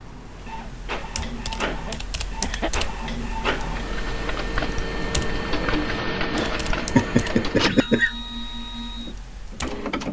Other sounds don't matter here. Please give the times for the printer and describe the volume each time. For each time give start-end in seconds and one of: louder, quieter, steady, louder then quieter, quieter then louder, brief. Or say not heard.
0.0-10.0 louder then quieter.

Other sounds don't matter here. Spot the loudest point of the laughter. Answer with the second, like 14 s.
7 s.